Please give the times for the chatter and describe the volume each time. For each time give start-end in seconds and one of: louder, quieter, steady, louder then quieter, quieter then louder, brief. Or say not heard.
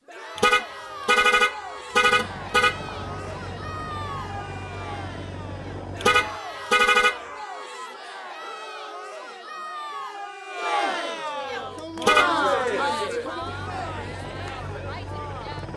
0.1-15.7 louder.